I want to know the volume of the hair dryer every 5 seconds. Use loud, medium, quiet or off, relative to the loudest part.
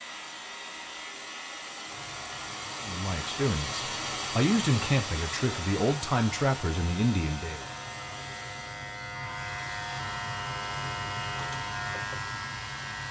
loud, loud, medium.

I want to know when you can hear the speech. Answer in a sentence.
The speech can be heard from 2.8 to 7.7 s.